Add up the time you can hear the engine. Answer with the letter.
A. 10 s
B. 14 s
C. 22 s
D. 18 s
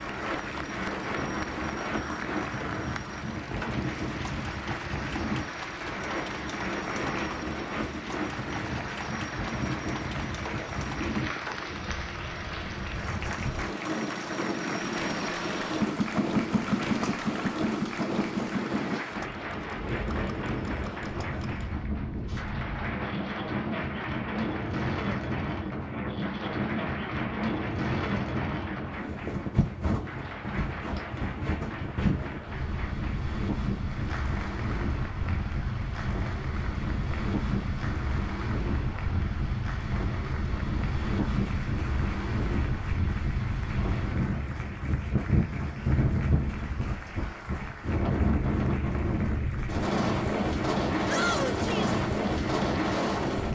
C.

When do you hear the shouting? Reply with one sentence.
You can hear the shouting from 51.0 to 52.0 s.